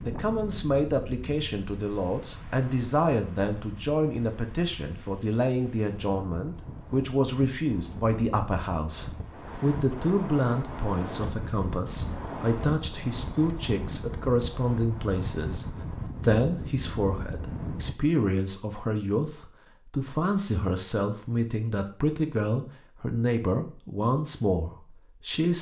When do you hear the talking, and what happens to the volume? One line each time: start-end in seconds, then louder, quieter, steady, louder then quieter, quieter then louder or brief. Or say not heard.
0.0-25.5 steady.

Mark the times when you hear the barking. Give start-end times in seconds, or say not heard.
not heard.